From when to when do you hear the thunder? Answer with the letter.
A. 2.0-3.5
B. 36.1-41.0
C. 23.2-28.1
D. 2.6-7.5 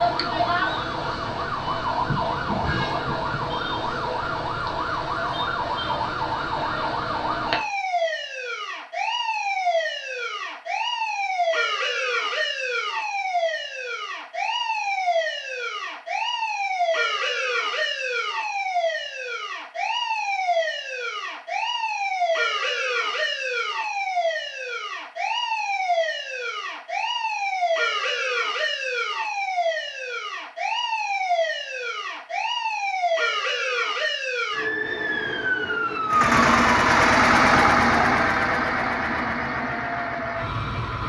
A.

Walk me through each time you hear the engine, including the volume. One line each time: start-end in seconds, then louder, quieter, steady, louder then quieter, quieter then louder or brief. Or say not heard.
36.1-41.0 quieter.